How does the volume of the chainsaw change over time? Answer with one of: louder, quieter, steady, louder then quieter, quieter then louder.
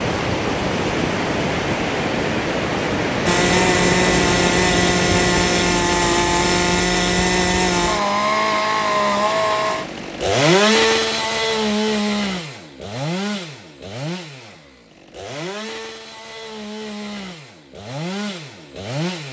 quieter.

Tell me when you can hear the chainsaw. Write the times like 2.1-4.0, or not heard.
3.2-19.2.